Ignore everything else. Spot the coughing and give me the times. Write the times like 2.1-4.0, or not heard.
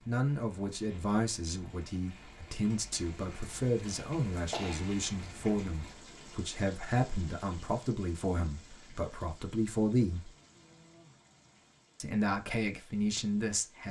3.9-4.8.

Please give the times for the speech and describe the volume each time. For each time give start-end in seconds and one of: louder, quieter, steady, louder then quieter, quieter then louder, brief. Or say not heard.
0.1-10.3 steady
12.0-13.8 brief.